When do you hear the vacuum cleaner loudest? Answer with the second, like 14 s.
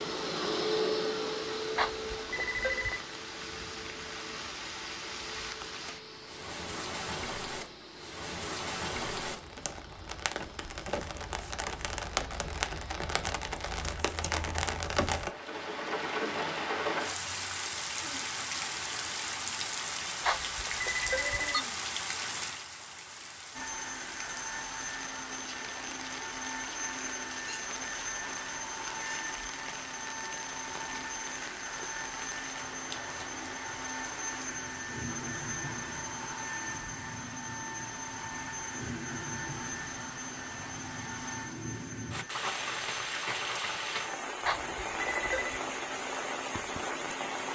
1 s.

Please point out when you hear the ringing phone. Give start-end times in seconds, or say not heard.
1.8-3.0, 20.2-21.6, 44.4-45.6.